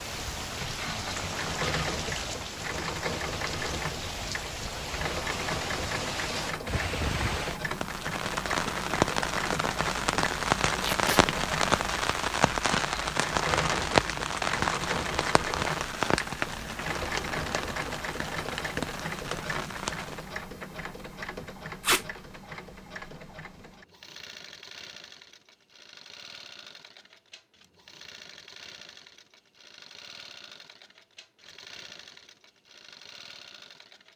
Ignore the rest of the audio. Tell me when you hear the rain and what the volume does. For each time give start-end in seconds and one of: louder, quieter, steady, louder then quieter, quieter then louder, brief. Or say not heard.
0.0-20.4 louder then quieter.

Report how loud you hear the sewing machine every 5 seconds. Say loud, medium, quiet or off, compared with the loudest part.
loud, loud, loud, loud, medium, quiet, quiet.